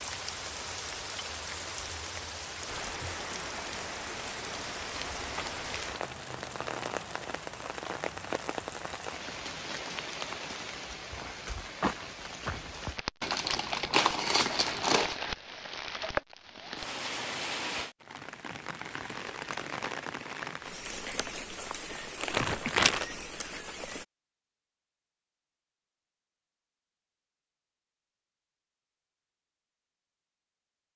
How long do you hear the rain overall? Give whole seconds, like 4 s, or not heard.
24 s.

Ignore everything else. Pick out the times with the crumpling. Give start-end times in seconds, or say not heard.
4.8-6.0, 13.2-15.2, 22.2-23.1.